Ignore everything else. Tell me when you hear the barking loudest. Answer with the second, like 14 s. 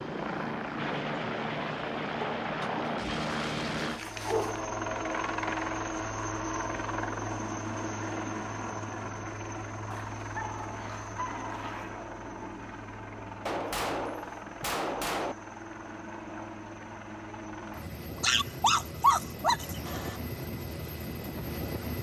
19 s.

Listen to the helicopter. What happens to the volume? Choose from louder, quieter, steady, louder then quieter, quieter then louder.
quieter.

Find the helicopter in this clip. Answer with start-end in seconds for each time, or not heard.
0.0-21.9.